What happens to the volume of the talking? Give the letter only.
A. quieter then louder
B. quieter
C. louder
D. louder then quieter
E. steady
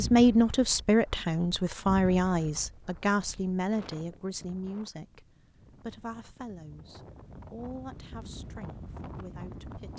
B.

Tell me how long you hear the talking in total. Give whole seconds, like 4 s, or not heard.
10 s.